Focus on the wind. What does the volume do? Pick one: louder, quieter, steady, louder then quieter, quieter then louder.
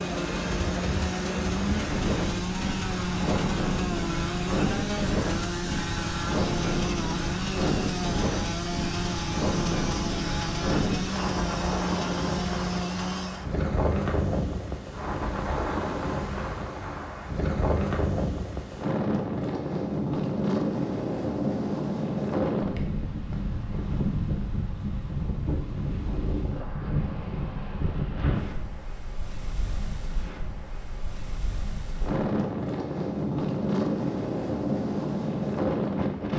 steady.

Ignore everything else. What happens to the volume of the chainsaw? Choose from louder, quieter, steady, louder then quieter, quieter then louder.
steady.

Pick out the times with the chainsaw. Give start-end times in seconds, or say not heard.
0.0-13.5.